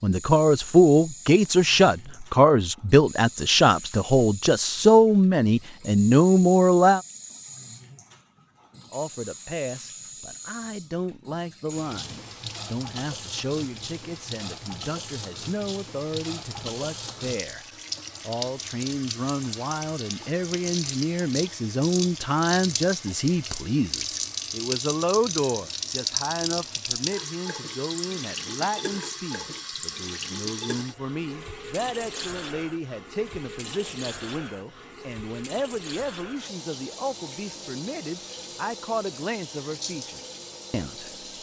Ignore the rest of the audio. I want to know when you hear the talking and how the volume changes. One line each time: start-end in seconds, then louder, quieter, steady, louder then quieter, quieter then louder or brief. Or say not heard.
0.0-7.0 steady
8.9-17.6 steady
18.2-41.2 quieter.